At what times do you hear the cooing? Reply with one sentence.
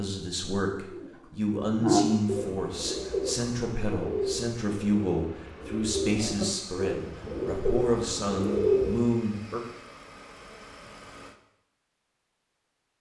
The cooing can be heard from 0.9 to 9.0 s.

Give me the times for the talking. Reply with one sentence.
The talking can be heard from 0.0 to 9.6 s.